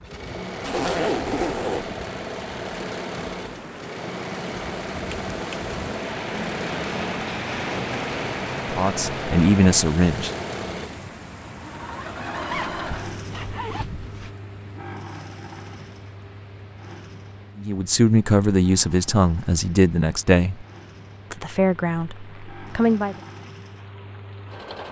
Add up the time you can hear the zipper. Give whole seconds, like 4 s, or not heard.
3 s.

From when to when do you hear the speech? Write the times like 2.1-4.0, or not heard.
8.7-10.3, 17.6-20.6, 21.3-23.1.